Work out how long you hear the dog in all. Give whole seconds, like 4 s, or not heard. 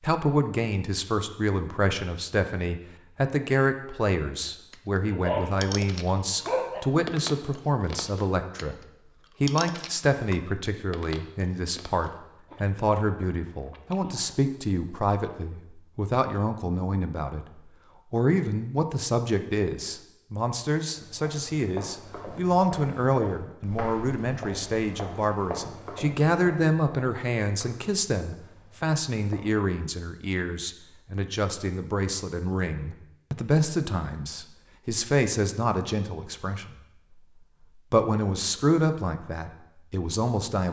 2 s.